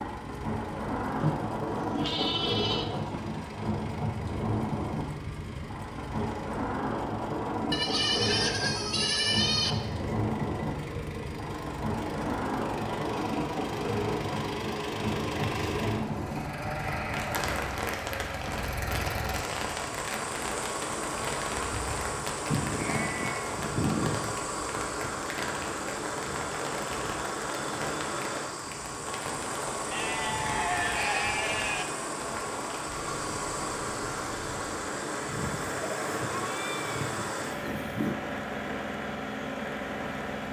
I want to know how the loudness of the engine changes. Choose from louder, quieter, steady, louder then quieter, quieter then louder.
louder.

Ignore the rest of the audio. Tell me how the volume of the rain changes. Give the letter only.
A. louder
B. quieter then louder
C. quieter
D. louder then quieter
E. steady
C.